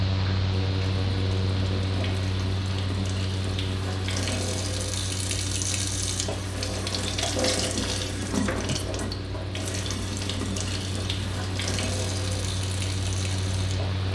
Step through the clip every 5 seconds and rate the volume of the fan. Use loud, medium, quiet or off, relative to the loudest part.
loud, medium, loud.